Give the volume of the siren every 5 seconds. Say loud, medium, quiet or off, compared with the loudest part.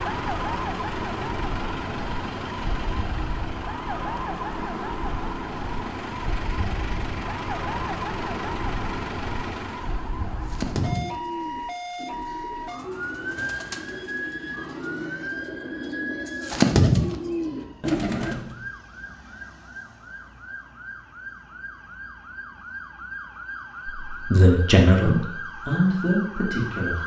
loud, loud, loud, medium, medium, loud.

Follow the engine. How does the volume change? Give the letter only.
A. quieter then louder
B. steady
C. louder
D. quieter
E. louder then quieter
A.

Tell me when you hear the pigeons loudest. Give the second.
17 s.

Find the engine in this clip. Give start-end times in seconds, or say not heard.
0.0-10.1.